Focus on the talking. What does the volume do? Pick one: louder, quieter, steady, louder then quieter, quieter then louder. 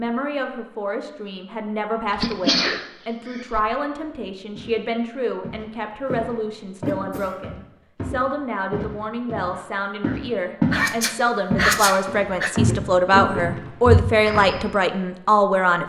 louder.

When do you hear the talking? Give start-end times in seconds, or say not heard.
0.0-15.8.